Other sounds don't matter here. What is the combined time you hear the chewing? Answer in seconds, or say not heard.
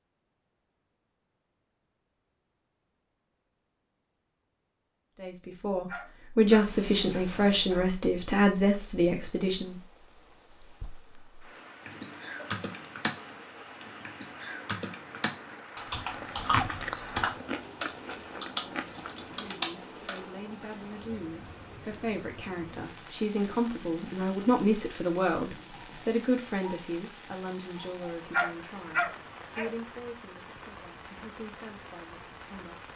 3 s.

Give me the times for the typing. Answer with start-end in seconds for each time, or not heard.
11.8-20.2.